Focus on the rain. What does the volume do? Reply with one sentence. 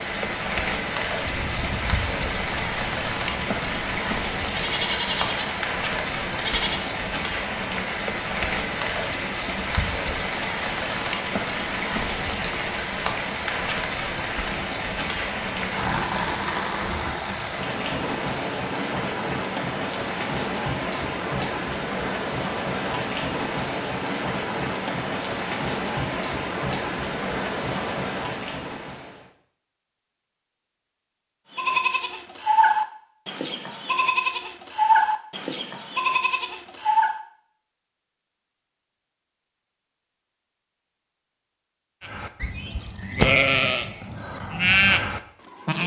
The loudness of the rain stays about the same.